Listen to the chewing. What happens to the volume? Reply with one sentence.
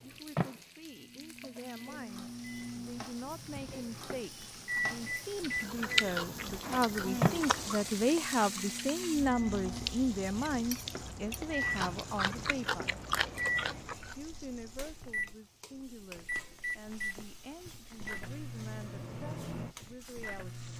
The loudness of the chewing goes down, then up.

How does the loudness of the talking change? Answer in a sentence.
The volume of the talking goes up, then down.